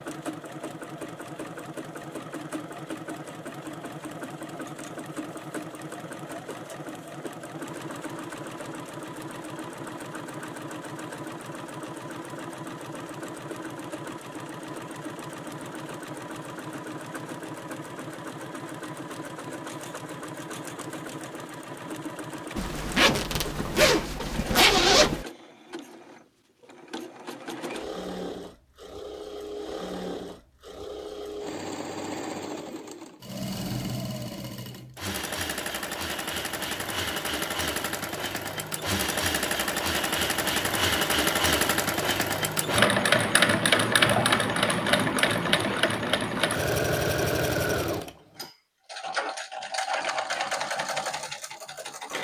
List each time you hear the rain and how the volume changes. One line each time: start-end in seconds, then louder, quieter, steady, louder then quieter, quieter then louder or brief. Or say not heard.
not heard.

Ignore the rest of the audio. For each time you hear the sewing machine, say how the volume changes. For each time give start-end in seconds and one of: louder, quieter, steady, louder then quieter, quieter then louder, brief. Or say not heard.
0.0-52.1 louder.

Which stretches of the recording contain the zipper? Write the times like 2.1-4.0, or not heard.
22.6-25.2.